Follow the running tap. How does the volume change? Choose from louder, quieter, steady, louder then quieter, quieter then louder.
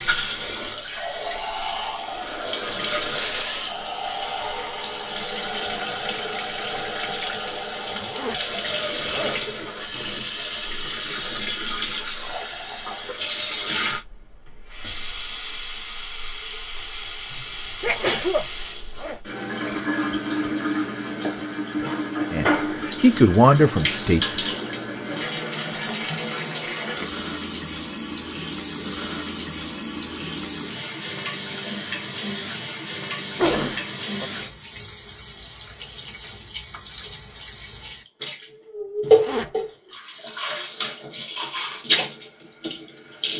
steady.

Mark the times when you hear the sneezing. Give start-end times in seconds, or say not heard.
3.1-3.8, 17.3-18.4, 33.4-34.2.